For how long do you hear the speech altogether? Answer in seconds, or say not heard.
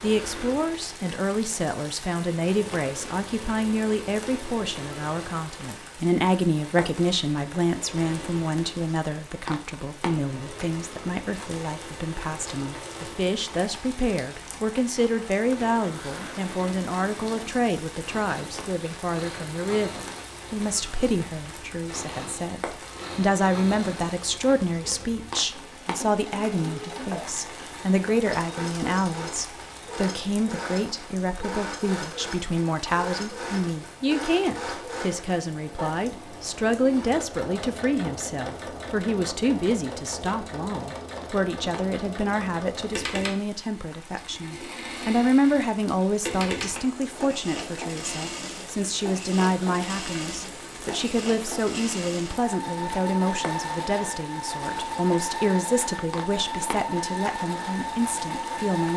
59 s.